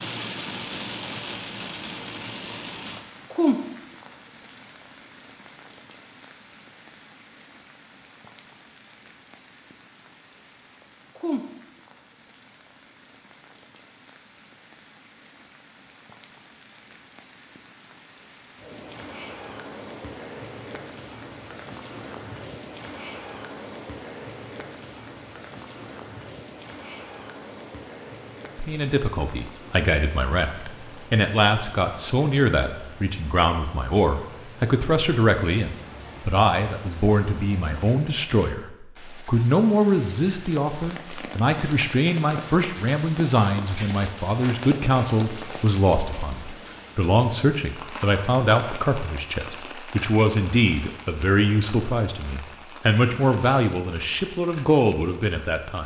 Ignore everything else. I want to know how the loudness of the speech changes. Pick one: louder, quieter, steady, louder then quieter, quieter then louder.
steady.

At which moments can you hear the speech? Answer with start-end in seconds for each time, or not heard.
28.6-55.8.